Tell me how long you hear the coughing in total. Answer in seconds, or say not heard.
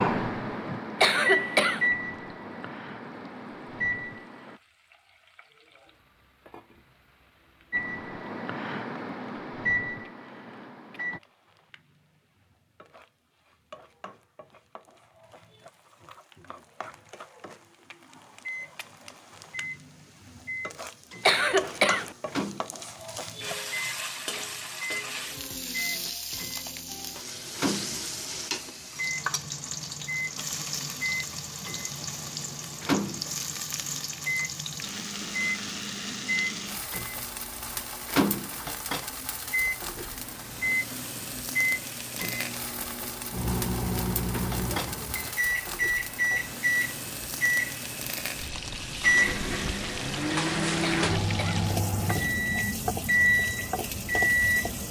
3 s.